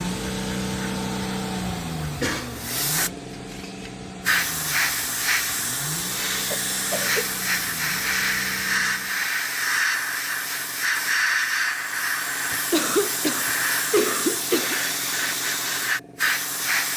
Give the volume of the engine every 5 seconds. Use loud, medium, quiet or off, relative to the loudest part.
loud, medium, off, off.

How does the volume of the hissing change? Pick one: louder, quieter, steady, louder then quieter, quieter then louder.
steady.